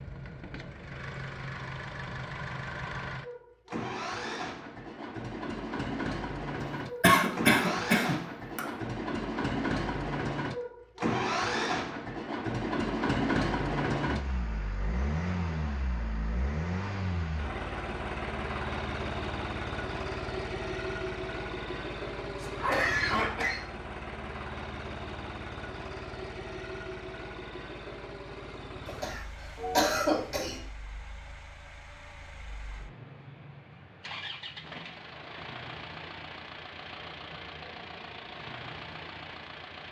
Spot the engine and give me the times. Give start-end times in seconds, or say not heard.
0.0-39.8.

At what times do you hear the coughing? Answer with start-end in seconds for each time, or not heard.
7.0-8.6, 22.4-23.6, 28.9-30.6.